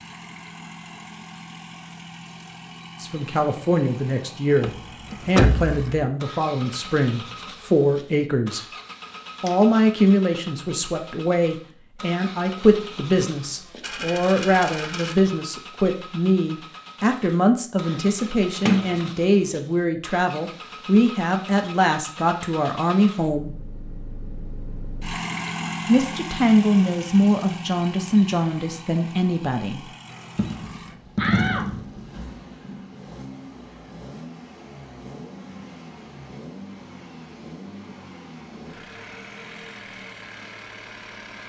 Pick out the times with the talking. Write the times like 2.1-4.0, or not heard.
3.0-8.6, 9.4-23.5, 25.9-29.9.